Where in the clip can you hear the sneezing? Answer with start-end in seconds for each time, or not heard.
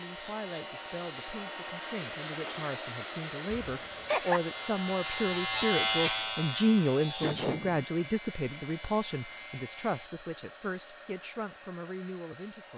3.5-4.4, 7.2-7.8.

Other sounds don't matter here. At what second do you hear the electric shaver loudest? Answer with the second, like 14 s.
6 s.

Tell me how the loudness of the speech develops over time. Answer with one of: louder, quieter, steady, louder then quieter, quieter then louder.
louder then quieter.